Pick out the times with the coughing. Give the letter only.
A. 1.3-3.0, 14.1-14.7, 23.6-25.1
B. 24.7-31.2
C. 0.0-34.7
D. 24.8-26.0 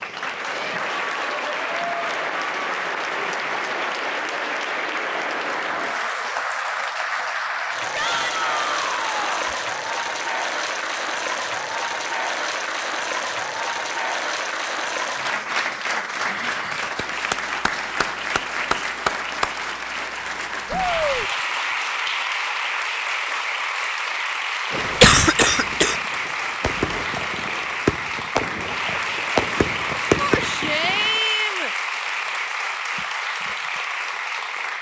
D.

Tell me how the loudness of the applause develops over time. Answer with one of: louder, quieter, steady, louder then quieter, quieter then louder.
steady.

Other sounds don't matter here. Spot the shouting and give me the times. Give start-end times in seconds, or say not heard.
7.9-9.6, 20.6-21.3, 30.1-31.7.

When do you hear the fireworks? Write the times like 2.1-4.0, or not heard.
24.7-31.2.